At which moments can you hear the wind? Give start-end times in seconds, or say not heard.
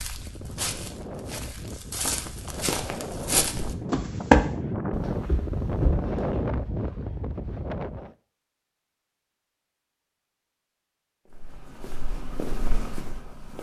0.0-8.2.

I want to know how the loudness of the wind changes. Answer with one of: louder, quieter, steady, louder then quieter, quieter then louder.
louder.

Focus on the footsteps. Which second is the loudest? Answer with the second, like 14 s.
4 s.